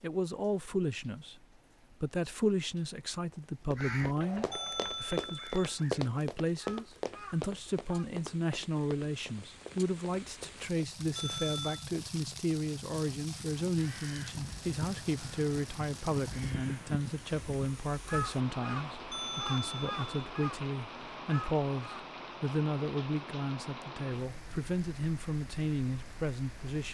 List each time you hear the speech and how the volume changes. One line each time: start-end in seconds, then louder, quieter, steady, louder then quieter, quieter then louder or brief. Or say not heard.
0.0-26.8 steady.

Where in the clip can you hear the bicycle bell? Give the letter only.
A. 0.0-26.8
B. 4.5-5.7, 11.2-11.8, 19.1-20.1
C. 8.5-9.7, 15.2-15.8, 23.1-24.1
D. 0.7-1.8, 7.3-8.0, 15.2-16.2
B.